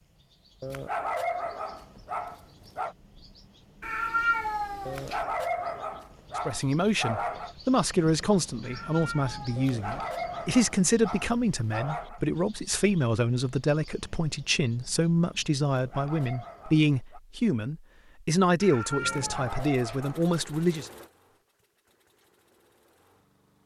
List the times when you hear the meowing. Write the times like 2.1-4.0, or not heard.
3.8-5.2, 8.6-10.1, 18.6-20.0.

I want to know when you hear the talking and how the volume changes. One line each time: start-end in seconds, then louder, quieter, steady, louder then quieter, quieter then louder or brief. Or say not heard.
6.3-20.9 steady.